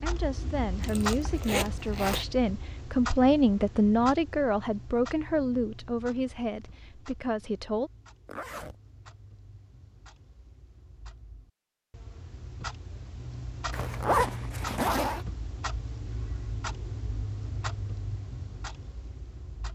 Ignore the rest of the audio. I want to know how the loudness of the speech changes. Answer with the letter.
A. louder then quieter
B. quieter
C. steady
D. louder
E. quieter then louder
A.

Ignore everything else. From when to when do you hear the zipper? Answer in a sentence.
You can hear the zipper from 0.8 to 2.2 s, from 8.2 to 8.8 s and from 13.7 to 15.2 s.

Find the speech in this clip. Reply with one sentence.
You can hear the speech from 0.0 to 7.9 s.